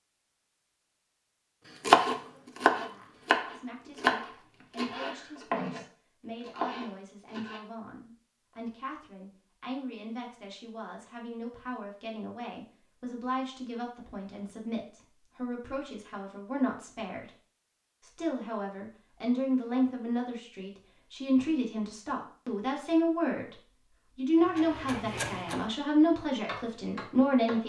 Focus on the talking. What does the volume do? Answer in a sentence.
The loudness of the talking goes up.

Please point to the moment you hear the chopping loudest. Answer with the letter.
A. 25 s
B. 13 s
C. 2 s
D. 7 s
C.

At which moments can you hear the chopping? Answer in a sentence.
You can hear the chopping from 1.9 to 5.8 s, from 6.4 to 7.6 s, from 24.4 to 25.6 s and from 26.4 to 27.6 s.